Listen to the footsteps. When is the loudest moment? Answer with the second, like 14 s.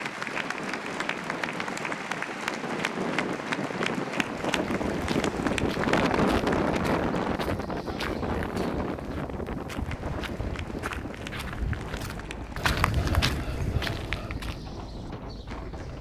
13 s.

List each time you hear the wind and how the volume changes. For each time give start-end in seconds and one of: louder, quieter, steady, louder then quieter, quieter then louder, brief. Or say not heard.
0.0-15.9 louder then quieter.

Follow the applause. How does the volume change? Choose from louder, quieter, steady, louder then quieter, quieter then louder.
quieter.